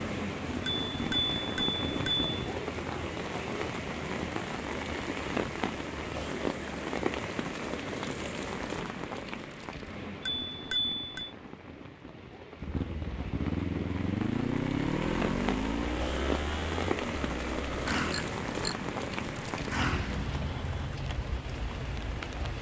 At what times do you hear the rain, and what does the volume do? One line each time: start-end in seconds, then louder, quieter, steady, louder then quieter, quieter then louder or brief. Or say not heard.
0.0-22.5 quieter then louder.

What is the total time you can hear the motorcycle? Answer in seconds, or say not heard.
8 s.